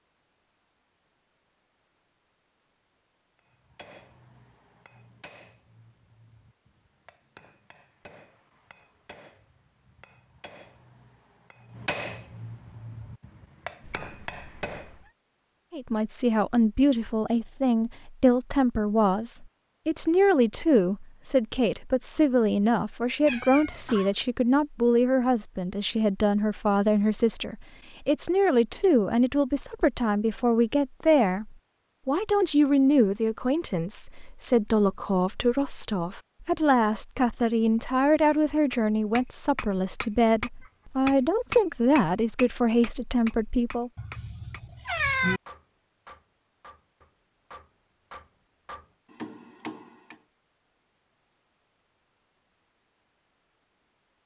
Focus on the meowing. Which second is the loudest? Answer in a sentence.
The volume of the meowing peaks at 45 seconds.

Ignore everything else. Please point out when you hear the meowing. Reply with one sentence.
You can hear the meowing from 13.8 to 15.1 s, from 23.2 to 24.1 s and from 44.0 to 45.4 s.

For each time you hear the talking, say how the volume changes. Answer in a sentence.
You can hear the talking from 15.7 to 43.9 s, at a steady volume.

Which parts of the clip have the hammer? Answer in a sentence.
You can hear the hammer from 3.4 to 14.9 s and from 38.7 to 50.2 s.